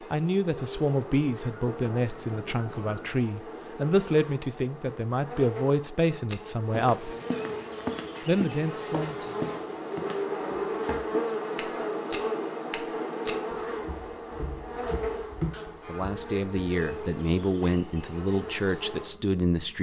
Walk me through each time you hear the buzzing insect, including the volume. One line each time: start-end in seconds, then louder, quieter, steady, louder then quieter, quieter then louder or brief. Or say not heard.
0.0-19.7 louder then quieter.